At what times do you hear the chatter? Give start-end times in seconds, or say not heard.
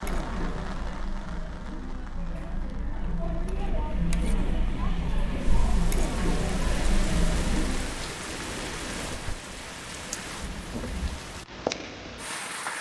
0.0-8.1.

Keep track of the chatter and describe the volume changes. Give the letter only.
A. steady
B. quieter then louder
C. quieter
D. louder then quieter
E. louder
E.